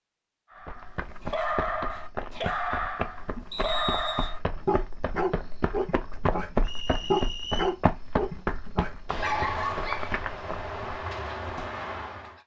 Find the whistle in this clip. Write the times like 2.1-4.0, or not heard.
3.5-4.3, 6.6-7.8.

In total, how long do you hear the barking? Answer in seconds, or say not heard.
12 s.